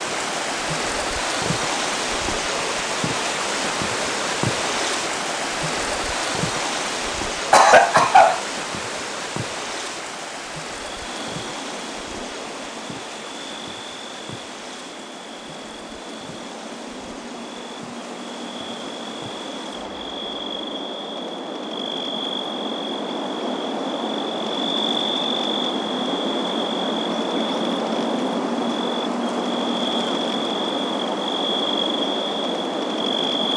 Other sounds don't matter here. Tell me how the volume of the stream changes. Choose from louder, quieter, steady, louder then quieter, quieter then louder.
quieter.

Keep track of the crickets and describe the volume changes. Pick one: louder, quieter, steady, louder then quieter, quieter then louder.
louder.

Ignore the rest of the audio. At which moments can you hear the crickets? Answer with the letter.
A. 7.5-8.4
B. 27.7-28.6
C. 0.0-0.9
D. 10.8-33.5
D.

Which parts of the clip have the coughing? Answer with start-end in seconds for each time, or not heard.
7.5-8.4.